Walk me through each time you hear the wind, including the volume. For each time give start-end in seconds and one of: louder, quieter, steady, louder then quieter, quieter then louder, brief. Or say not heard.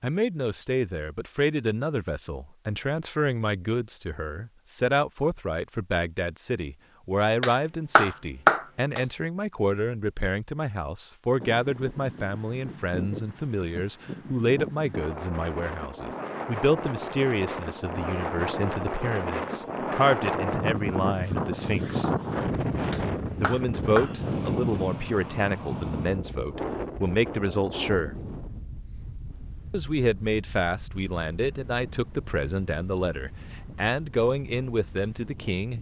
11.3-35.7 louder then quieter.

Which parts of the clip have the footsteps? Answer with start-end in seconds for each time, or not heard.
not heard.